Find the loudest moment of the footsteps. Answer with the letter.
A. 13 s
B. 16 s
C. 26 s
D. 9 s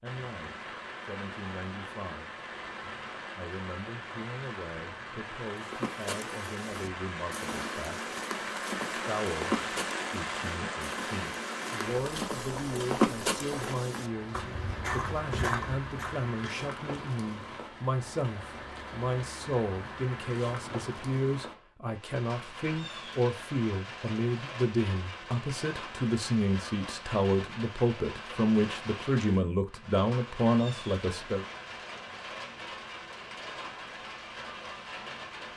A.